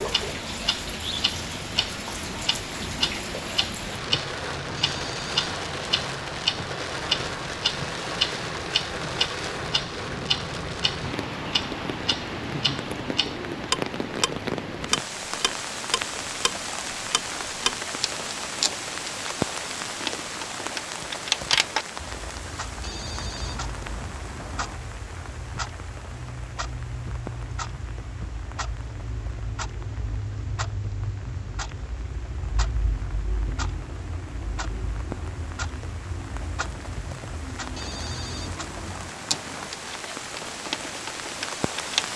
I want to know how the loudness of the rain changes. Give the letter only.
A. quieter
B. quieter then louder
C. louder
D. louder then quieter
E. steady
B.